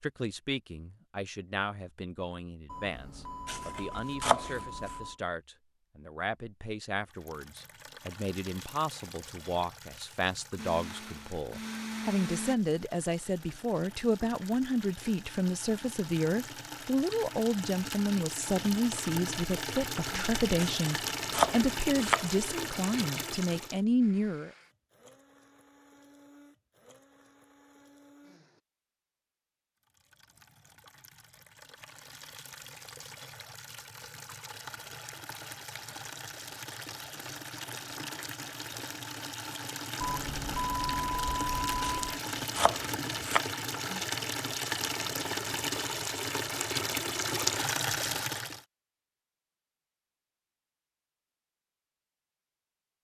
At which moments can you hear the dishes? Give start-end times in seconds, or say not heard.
not heard.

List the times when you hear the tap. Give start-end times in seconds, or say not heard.
7.0-23.8, 29.9-48.6.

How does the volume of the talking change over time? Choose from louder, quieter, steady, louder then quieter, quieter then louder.
louder.